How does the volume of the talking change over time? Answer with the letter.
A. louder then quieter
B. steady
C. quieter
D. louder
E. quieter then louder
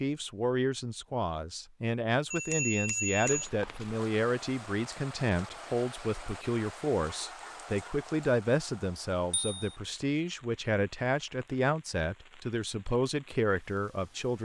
B.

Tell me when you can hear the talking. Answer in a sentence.
The talking can be heard from 0.0 to 14.4 s.